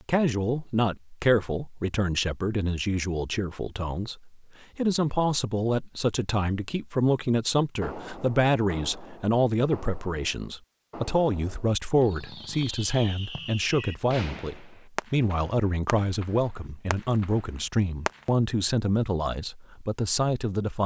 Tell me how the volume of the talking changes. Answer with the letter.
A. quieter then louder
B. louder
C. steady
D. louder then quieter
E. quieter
C.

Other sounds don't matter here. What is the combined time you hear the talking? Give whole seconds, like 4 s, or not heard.
21 s.